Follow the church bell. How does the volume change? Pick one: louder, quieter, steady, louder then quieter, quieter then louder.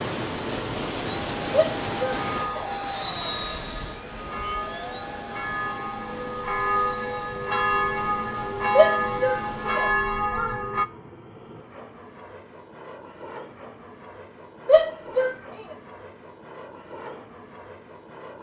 louder.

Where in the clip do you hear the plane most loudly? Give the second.
3 s.